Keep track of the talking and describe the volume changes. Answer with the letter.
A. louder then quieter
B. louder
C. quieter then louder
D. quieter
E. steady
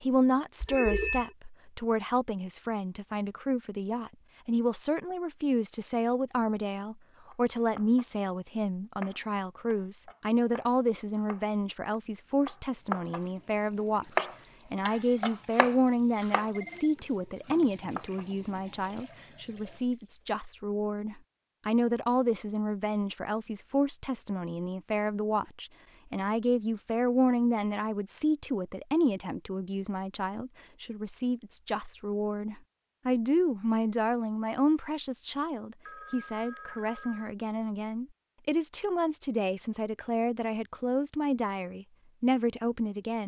E.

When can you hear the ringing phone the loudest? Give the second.
1 s.